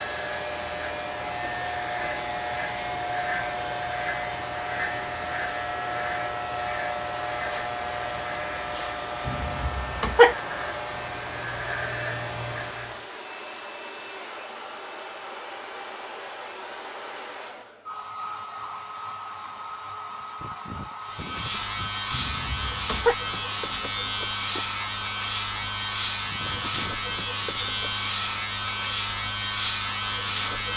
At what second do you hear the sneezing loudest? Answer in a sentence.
The volume of the sneezing peaks at 10 seconds.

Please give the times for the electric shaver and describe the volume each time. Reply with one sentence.
The electric shaver can be heard from 0.0 to 13.1 s, at a steady volume; and from 21.0 to 30.7 s, at a steady volume.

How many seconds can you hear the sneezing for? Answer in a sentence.
The sneezing can be heard for 2 seconds in total.